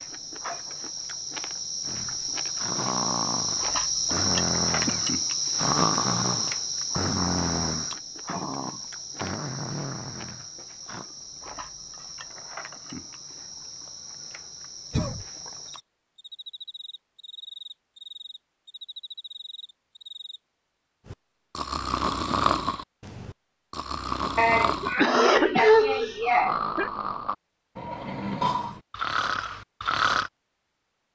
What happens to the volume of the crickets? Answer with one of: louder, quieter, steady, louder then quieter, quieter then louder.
quieter.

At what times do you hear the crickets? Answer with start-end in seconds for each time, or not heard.
0.0-20.4.